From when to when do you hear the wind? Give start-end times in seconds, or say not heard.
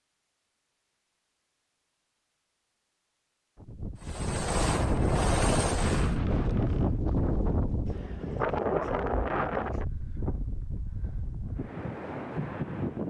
3.5-13.0.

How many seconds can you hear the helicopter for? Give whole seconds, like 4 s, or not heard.
2 s.